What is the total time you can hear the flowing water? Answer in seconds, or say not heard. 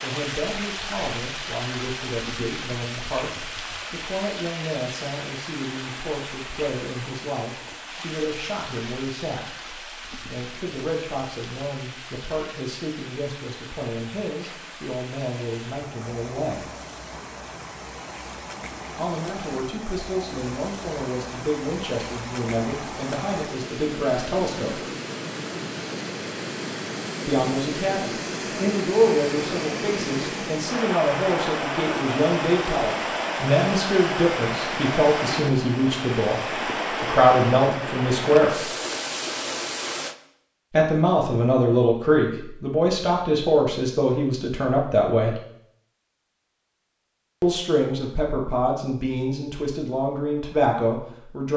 40 s.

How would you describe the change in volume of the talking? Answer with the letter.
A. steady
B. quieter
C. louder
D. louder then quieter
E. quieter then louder
C.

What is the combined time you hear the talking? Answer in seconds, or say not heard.
43 s.